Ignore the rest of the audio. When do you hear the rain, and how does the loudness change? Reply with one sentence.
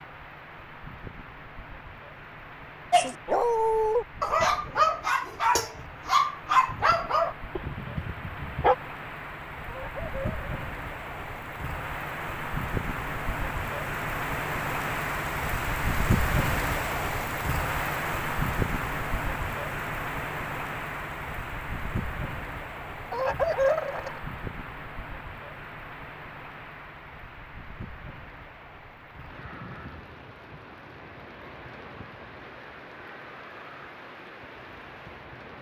The rain can be heard from 0.0 to 35.5 s, getting louder then quieter.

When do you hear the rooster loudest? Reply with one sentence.
The loudest moment of the rooster is at 24 seconds.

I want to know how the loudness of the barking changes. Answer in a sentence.
The loudness of the barking goes down.